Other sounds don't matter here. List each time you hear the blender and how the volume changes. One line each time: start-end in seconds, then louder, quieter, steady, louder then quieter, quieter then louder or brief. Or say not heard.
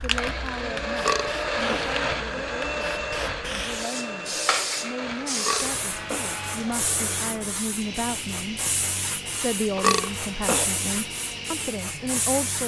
0.0-12.3 quieter.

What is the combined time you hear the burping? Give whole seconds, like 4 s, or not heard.
3 s.